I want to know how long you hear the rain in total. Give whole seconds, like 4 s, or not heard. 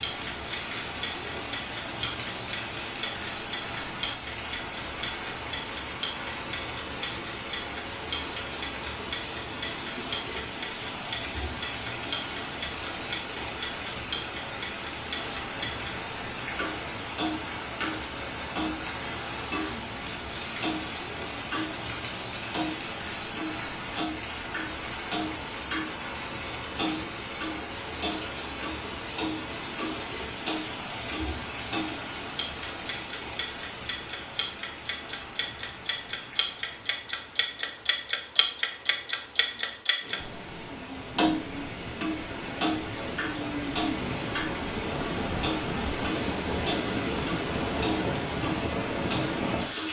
50 s.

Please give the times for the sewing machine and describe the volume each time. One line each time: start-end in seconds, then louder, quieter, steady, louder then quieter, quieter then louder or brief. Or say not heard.
not heard.